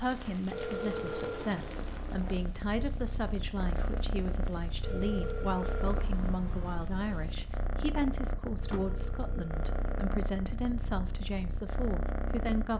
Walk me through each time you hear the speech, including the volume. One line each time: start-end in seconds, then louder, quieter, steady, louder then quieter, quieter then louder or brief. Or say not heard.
0.0-12.7 steady.